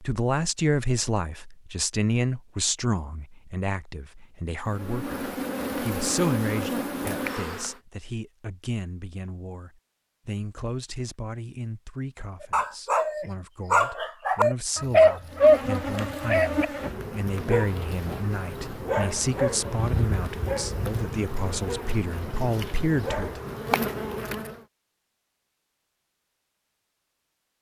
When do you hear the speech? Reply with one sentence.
You can hear the speech from 0.0 to 23.4 s.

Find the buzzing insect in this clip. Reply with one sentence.
The buzzing insect can be heard from 4.7 to 7.8 s and from 15.3 to 24.6 s.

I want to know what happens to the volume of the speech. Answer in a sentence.
The volume of the speech goes down, then up.